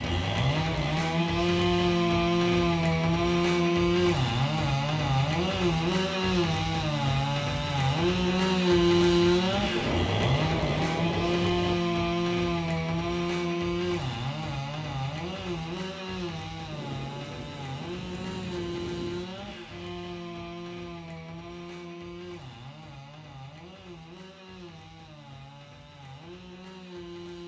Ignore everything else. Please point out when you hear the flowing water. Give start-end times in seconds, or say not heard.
not heard.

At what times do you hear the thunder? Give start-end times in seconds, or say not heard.
9.8-11.8, 16.7-19.3.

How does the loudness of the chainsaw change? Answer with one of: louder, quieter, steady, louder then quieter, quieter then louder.
quieter.